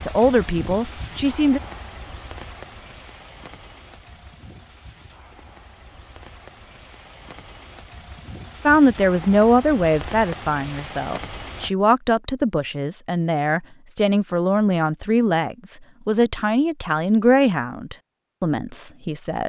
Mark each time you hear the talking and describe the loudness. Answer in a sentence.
The talking can be heard briefly from 0.0 to 1.6 s; and from 8.7 to 19.4 s, at a steady volume.